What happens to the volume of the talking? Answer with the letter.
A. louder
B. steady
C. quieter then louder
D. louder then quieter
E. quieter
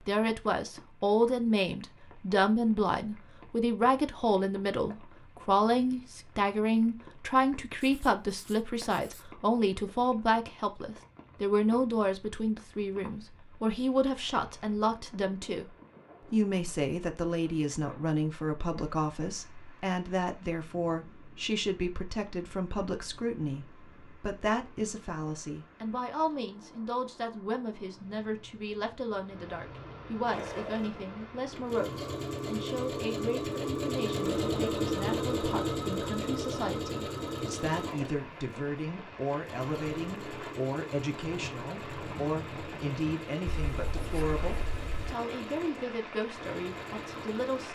E.